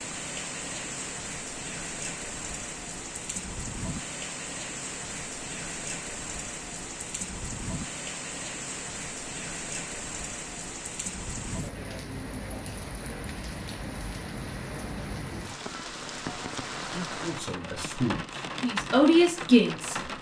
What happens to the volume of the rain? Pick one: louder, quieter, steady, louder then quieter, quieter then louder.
steady.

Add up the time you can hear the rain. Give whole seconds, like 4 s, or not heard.
20 s.